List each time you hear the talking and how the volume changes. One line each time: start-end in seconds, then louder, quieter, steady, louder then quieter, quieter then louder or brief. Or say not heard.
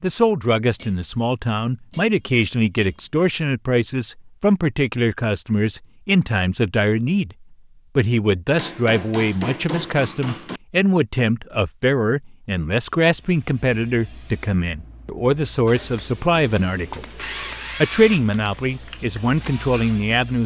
0.0-17.1 steady
17.8-20.4 brief.